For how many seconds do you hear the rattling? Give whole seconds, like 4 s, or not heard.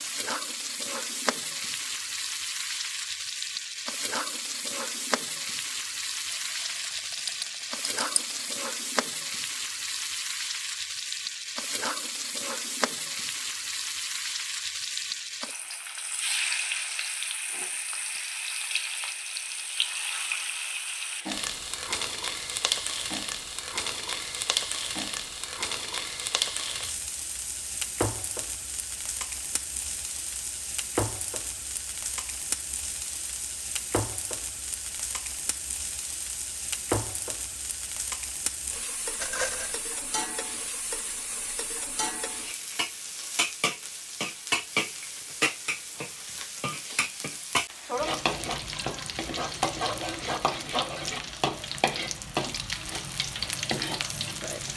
3 s.